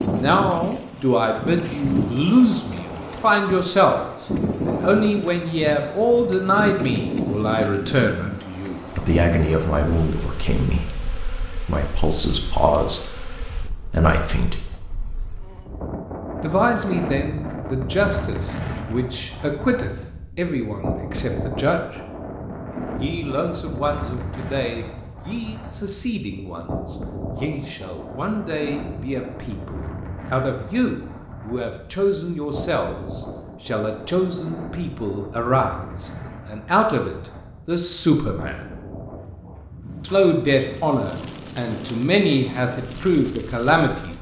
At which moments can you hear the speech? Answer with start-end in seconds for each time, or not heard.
0.0-14.7, 16.4-22.0, 22.9-38.7, 40.0-44.1.